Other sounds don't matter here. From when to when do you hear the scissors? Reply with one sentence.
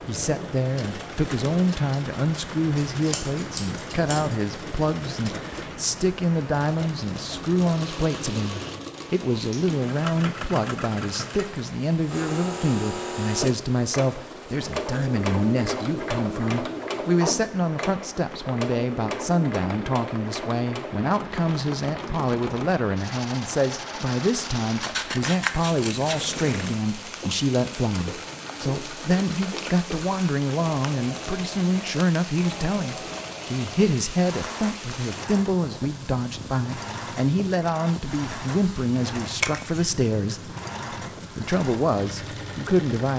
The scissors can be heard from 2.9 to 4.3 s, from 24.8 to 26.2 s and from 39.2 to 40.0 s.